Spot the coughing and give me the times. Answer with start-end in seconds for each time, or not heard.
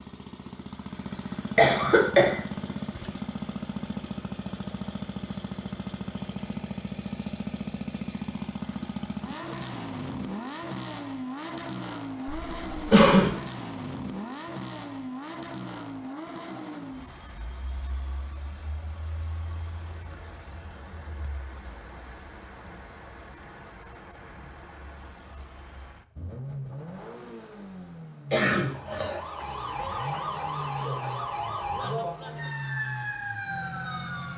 1.6-2.4, 12.2-13.3, 28.3-29.2.